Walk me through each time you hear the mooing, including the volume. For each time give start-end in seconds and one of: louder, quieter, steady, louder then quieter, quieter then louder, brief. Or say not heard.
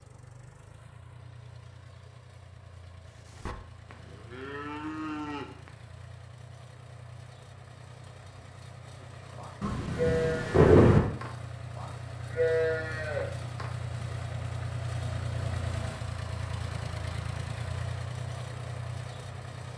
3.2-5.7 brief
9.0-13.7 quieter then louder.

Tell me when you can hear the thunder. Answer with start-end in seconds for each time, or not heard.
9.6-11.0.